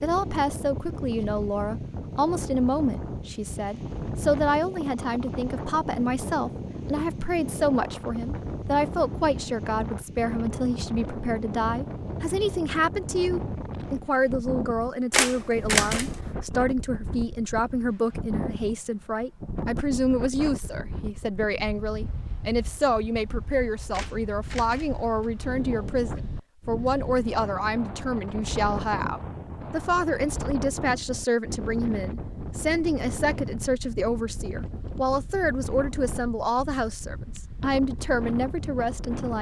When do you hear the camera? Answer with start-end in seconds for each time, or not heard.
15.1-16.3, 23.9-25.3.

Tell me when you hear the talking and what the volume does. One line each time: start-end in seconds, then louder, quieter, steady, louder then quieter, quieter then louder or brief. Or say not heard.
0.0-39.3 steady.